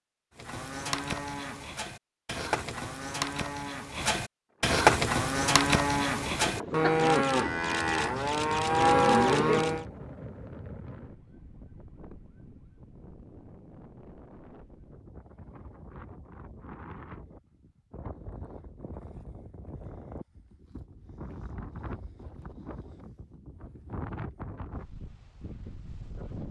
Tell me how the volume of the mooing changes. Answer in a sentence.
The loudness of the mooing goes up.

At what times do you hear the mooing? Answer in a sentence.
You can hear the mooing from 0.3 to 9.8 s.